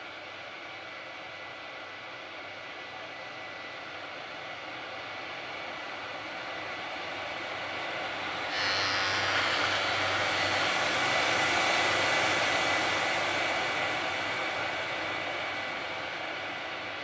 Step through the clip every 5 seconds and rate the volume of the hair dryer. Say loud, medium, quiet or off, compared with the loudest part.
quiet, medium, loud, medium.